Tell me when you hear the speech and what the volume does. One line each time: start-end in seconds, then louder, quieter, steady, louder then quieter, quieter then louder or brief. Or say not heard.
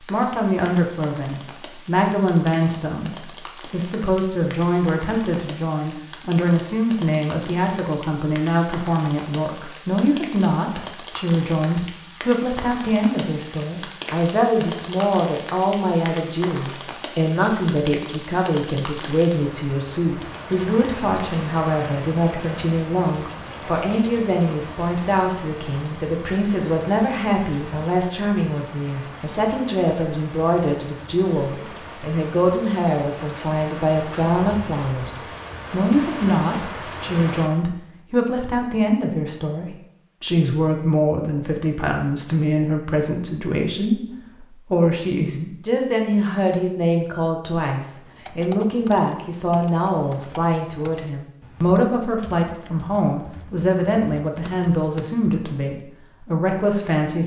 0.0-57.2 steady.